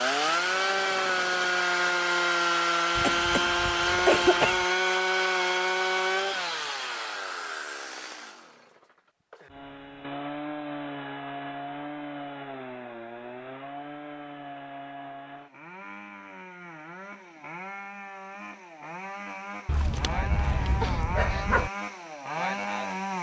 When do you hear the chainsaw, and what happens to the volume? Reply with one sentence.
The chainsaw can be heard from 0.0 to 23.1 s, getting quieter then louder.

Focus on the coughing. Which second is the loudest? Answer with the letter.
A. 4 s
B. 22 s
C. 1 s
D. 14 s
A.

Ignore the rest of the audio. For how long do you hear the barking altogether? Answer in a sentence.
The barking can be heard for 2 seconds in total.